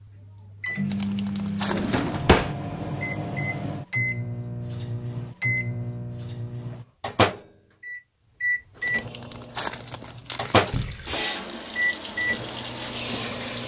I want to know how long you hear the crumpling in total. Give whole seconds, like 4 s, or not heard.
3 s.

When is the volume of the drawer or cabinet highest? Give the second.
2 s.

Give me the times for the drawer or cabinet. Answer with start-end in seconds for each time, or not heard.
1.7-2.5, 10.7-11.2.